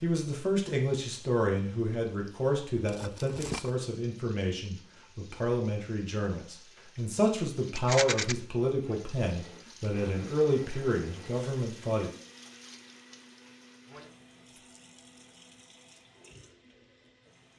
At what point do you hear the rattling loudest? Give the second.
8 s.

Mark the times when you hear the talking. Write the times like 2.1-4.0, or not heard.
0.0-12.1.